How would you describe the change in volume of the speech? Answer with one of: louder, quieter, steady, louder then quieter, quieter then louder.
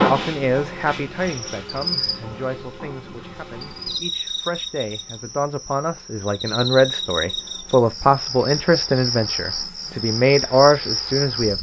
quieter then louder.